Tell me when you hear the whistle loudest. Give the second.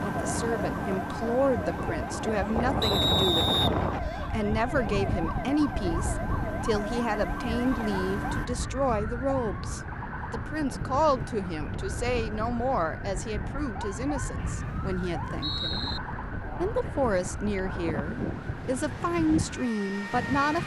3 s.